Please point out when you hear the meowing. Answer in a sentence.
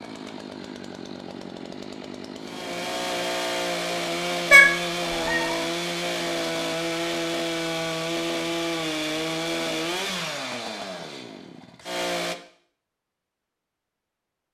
You can hear the meowing from 4.5 to 5.5 s.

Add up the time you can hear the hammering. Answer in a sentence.
You can't hear the hammering here.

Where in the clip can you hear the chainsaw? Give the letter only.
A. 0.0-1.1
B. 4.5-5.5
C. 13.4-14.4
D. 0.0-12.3
D.